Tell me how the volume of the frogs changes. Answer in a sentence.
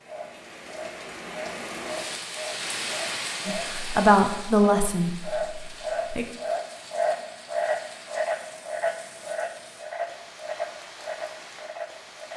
The loudness of the frogs goes up, then down.